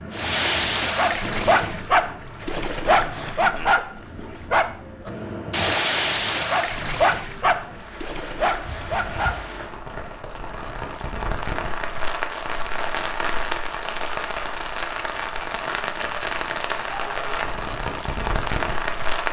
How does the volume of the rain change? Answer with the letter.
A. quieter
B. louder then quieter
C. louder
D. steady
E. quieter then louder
C.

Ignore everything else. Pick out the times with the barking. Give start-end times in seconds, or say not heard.
0.1-9.4.